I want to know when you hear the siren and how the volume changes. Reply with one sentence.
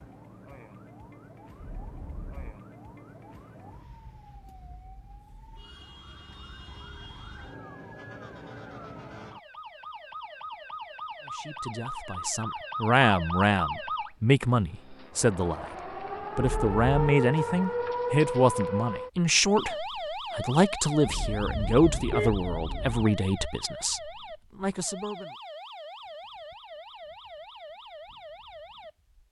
The siren can be heard from 0.0 to 29.1 s, getting louder then quieter.